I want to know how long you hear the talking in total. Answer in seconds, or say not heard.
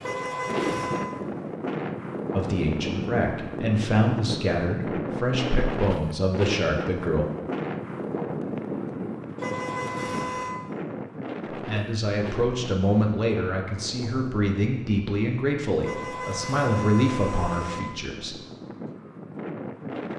12 s.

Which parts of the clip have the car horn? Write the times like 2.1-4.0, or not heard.
0.0-1.1, 9.3-10.6, 15.8-17.8.